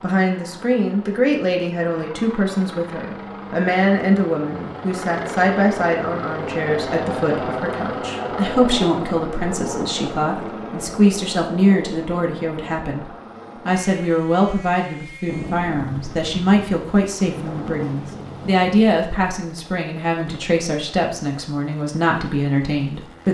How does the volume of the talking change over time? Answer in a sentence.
The volume of the talking stays about the same.